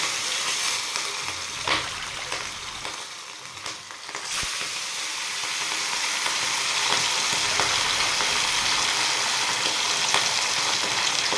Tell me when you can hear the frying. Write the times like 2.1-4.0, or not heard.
0.0-11.3.